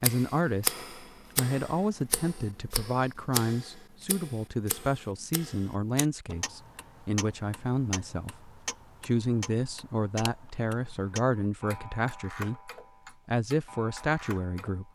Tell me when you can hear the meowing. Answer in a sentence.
The meowing can't be heard in this clip.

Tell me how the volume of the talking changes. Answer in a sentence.
The loudness of the talking stays about the same.